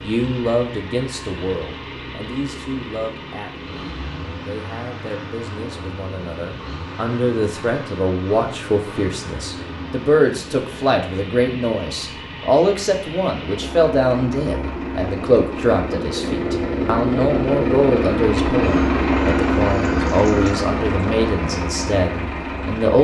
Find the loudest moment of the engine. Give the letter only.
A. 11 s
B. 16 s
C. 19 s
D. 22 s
C.